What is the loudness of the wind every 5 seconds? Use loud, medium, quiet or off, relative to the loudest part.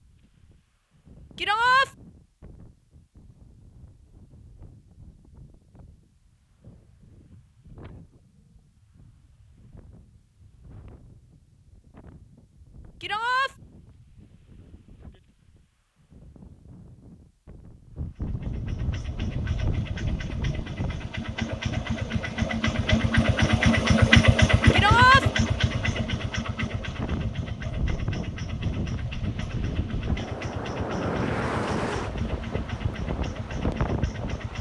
quiet, quiet, quiet, medium, medium, loud, loud.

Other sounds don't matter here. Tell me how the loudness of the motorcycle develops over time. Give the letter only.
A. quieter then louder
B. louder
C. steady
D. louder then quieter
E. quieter
D.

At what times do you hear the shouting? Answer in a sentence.
The shouting can be heard from 1.4 to 1.9 s, from 13.0 to 13.5 s and from 24.7 to 25.2 s.